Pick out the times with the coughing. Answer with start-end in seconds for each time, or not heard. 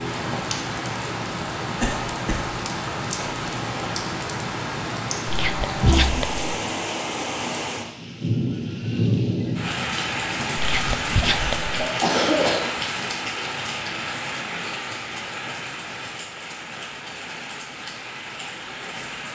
1.8-2.5, 11.1-12.7.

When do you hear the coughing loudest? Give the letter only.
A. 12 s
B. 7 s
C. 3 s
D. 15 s
A.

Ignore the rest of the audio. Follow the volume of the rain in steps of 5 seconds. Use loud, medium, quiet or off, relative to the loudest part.
loud, loud, loud, medium.